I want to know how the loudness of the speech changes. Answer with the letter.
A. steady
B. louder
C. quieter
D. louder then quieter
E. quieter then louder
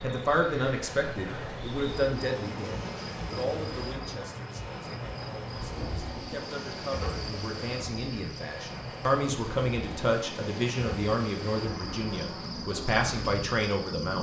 E.